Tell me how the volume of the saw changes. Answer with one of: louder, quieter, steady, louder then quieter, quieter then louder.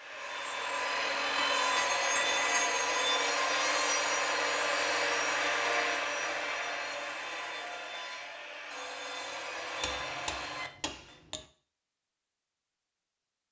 quieter.